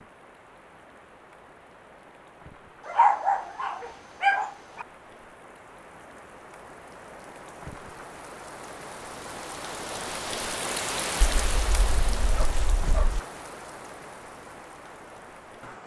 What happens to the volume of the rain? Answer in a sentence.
The volume of the rain goes up, then down.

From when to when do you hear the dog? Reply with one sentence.
The dog can be heard from 2.9 to 4.8 s and from 11.4 to 13.2 s.